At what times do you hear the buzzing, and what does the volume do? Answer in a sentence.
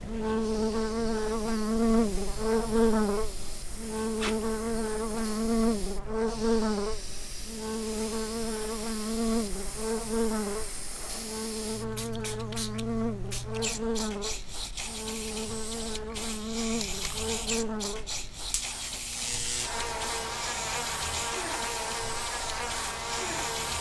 You can hear the buzzing from 0.0 to 23.7 s, getting quieter.